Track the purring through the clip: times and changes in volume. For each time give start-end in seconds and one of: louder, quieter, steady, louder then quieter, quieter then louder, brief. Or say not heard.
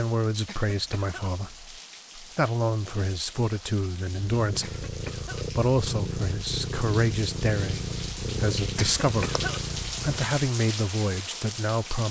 4.2-10.4 steady.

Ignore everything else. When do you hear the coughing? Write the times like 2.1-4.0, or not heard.
0.5-1.6, 4.6-5.5, 8.8-9.7.